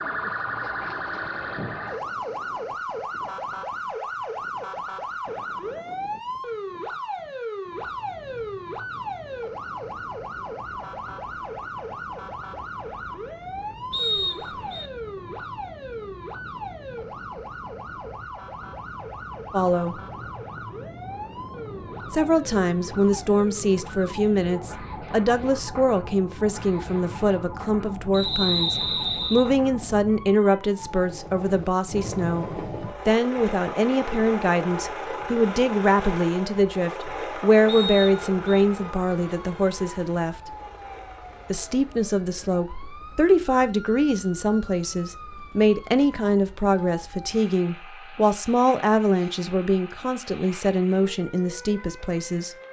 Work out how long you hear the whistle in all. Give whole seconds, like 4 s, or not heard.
3 s.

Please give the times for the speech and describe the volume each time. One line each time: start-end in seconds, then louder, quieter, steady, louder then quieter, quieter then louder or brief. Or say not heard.
19.5-20.0 brief
22.1-40.5 steady
41.5-52.5 steady.